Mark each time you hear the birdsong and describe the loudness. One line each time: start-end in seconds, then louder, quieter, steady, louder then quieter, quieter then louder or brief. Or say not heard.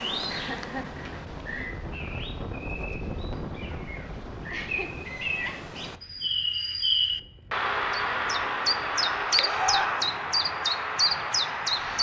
0.0-11.9 louder.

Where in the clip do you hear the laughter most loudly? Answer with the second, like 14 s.
10 s.